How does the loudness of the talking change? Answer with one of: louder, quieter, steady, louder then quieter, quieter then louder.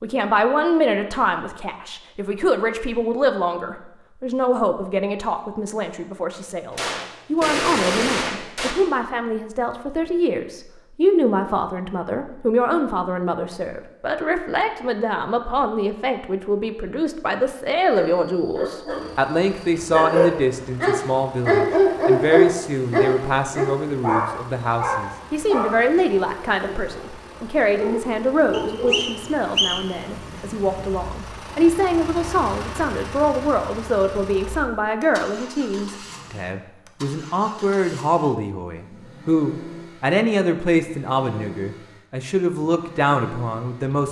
steady.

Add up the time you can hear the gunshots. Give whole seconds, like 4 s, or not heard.
2 s.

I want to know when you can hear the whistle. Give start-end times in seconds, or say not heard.
28.5-30.0.